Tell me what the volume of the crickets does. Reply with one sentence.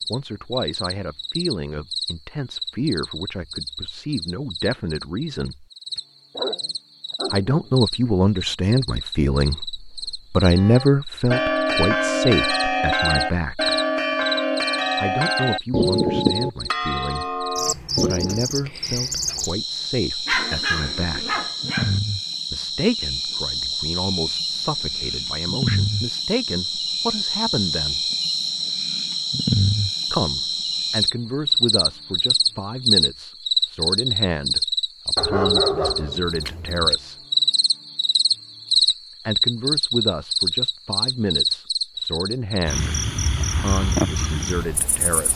The volume of the crickets goes up.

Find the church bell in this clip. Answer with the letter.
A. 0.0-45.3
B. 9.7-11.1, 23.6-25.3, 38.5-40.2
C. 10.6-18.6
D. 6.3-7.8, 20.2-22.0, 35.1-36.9
C.